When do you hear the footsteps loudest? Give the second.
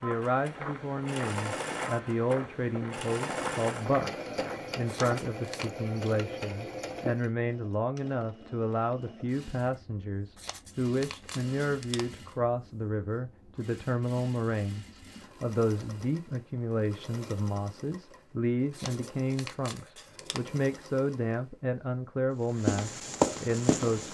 23 s.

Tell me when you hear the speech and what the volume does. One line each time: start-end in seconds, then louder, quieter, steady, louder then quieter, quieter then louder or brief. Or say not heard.
0.0-24.1 steady.